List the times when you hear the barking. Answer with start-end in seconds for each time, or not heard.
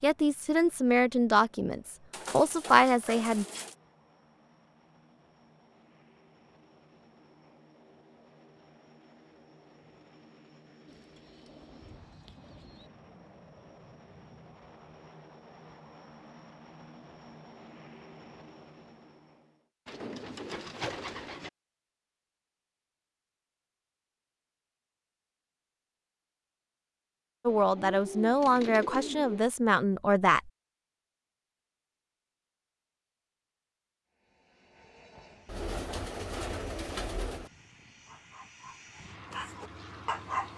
38.0-40.5.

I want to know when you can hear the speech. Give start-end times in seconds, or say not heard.
0.0-3.5, 27.4-30.5.